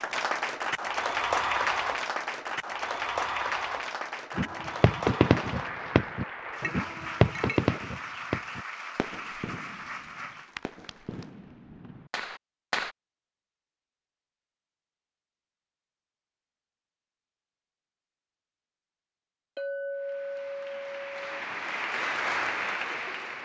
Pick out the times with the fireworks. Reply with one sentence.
The fireworks can be heard from 4.3 to 12.9 s.